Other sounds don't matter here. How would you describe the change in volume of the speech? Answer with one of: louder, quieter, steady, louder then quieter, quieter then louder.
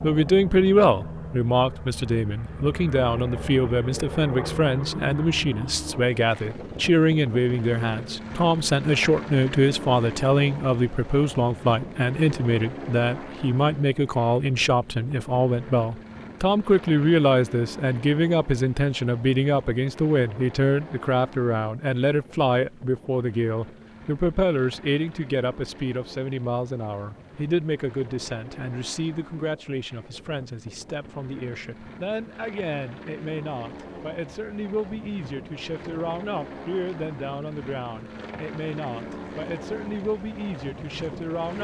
quieter.